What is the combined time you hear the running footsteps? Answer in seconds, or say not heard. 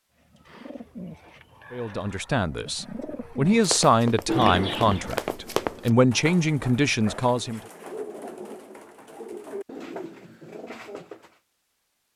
2 s.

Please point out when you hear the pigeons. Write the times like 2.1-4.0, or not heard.
0.1-11.4.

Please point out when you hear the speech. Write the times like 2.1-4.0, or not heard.
1.7-7.6.